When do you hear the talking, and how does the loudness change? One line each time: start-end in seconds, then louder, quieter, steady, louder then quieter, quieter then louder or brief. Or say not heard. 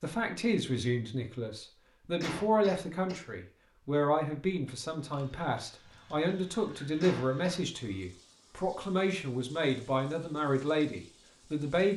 0.0-11.9 steady.